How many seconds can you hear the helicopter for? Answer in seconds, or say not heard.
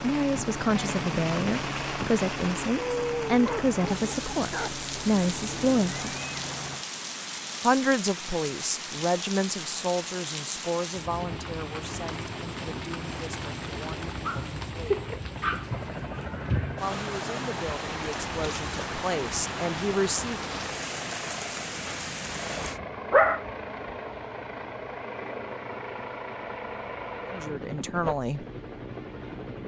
21 s.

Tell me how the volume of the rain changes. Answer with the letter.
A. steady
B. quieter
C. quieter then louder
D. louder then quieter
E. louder
A.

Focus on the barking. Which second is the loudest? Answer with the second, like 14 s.
23 s.